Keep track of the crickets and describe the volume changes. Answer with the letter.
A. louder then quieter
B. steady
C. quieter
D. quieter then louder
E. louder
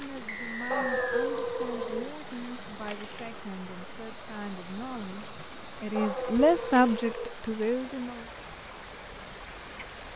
C.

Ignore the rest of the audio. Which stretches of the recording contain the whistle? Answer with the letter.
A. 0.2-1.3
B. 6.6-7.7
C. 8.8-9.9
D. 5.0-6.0
A.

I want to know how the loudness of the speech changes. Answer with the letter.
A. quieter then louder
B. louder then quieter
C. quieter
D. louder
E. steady
D.